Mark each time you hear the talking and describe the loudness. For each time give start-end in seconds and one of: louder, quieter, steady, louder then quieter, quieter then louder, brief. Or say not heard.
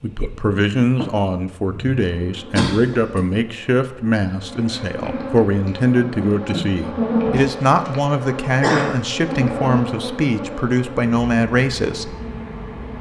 0.0-12.2 steady.